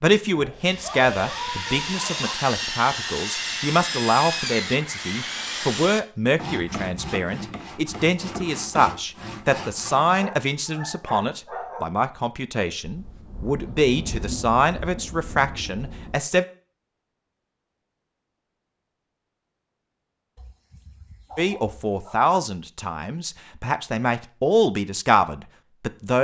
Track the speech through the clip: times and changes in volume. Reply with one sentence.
The speech can be heard from 0.0 to 16.4 s, at a steady volume; and from 21.4 to 26.1 s, getting quieter then louder.